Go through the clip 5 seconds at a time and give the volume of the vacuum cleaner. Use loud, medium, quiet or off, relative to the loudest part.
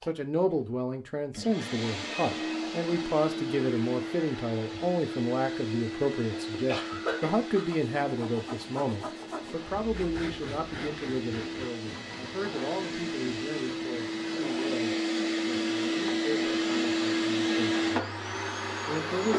medium, medium, medium, loud.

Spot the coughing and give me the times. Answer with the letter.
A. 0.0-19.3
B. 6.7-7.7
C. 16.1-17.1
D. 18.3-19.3
B.